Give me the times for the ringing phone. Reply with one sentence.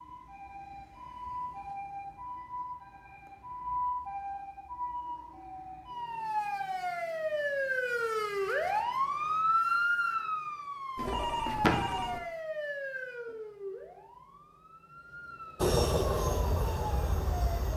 You can hear the ringing phone from 10.9 to 12.2 s.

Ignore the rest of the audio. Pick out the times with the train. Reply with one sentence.
The train can be heard from 15.6 to 17.7 s.